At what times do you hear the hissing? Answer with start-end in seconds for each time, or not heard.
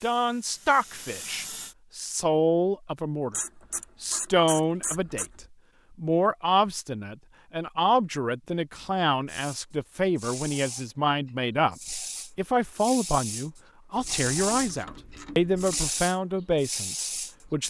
0.0-1.8, 9.2-17.4.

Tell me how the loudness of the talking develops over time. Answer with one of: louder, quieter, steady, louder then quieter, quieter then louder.
steady.